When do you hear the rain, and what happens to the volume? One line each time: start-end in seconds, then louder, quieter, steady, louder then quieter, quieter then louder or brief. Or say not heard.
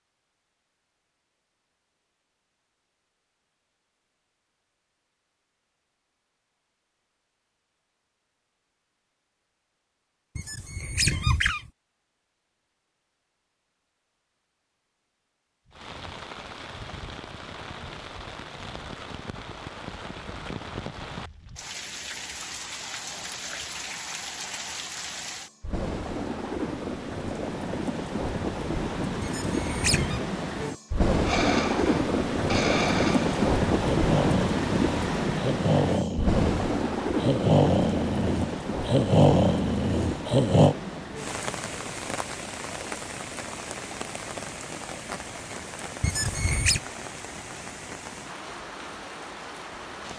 15.7-50.1 louder then quieter.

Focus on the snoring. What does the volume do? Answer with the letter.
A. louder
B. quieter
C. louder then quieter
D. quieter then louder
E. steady
A.